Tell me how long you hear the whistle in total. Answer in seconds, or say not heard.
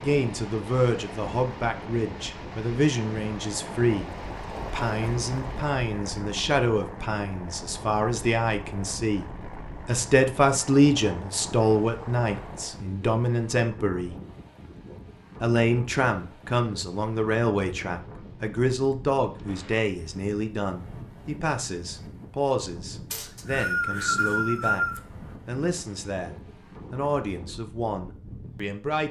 2 s.